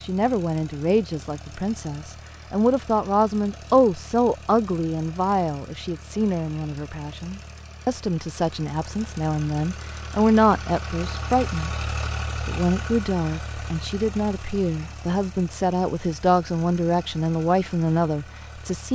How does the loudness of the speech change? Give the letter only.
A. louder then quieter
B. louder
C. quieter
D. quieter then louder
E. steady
E.